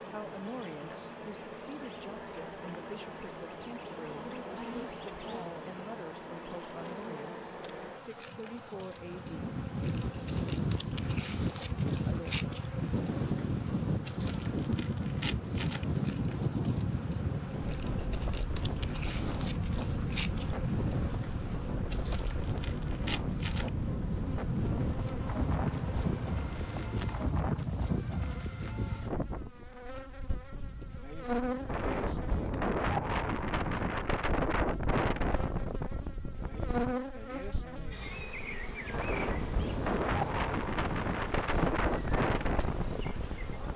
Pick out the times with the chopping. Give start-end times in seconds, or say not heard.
not heard.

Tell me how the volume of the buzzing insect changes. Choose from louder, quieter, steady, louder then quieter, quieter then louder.
steady.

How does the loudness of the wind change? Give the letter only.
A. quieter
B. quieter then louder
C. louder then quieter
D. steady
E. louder
D.